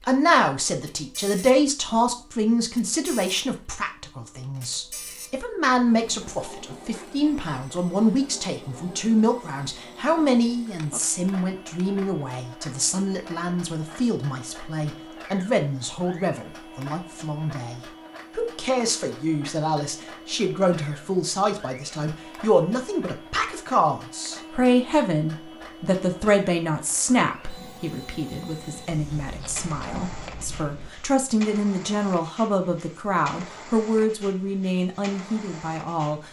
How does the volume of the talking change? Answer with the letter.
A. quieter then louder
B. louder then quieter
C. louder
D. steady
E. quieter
D.